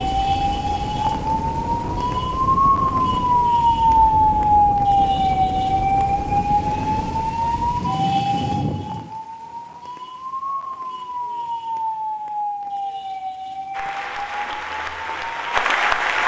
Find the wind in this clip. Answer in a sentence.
You can hear the wind from 0.0 to 9.1 s.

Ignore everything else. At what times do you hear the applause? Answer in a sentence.
The applause can be heard from 13.7 to 16.2 s.